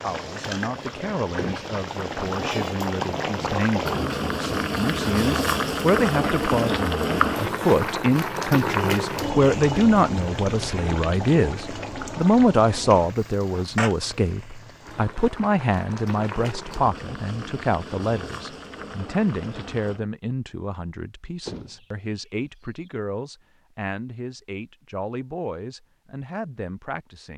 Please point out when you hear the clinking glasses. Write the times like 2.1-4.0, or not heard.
not heard.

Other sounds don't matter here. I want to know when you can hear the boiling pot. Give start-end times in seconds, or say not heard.
0.0-20.0.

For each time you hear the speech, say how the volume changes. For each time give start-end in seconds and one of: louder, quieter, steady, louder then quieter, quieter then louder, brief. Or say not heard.
0.0-27.3 louder then quieter.